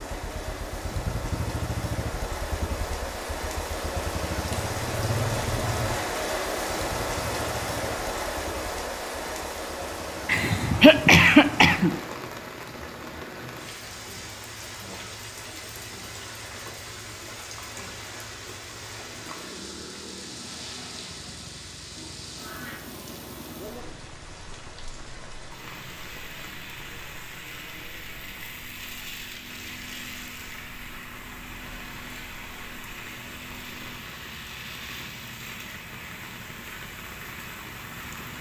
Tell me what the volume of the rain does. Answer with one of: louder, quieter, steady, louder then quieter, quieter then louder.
quieter.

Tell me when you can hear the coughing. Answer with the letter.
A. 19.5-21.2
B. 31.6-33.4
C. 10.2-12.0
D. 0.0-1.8
C.